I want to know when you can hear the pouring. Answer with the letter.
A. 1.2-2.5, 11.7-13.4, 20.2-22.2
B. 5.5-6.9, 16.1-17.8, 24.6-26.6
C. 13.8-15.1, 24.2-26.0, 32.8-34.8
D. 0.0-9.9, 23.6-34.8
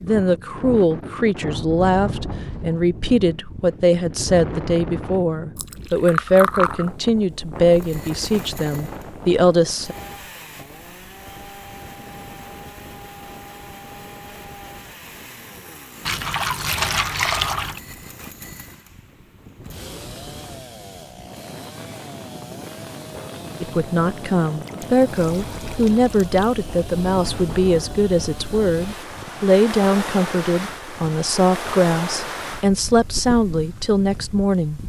B.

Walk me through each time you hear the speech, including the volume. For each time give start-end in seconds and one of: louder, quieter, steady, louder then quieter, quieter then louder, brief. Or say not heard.
0.0-9.9 steady
23.6-34.8 steady.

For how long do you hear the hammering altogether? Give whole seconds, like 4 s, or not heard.
not heard.